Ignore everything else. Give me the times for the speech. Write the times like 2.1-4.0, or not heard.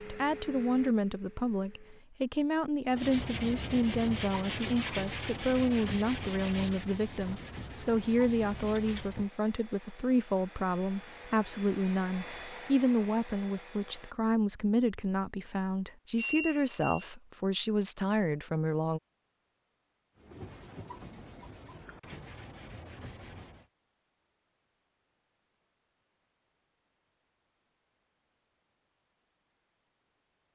0.0-19.0.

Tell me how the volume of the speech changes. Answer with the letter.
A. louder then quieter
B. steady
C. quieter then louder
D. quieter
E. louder
B.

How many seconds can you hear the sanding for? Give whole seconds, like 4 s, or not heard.
10 s.